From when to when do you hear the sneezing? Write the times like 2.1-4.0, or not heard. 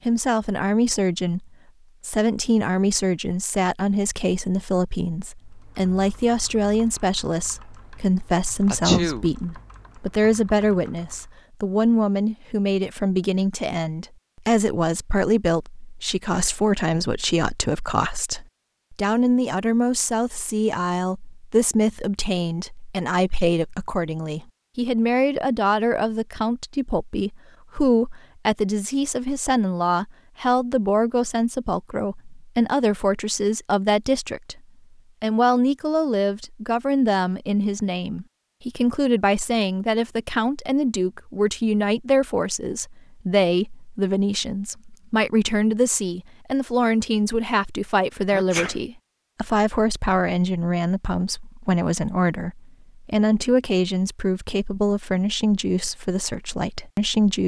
8.7-9.2, 48.3-48.8.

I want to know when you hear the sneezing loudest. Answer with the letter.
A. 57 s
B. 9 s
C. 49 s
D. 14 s
B.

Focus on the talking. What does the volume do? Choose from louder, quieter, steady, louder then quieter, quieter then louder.
steady.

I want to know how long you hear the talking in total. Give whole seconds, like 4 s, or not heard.
57 s.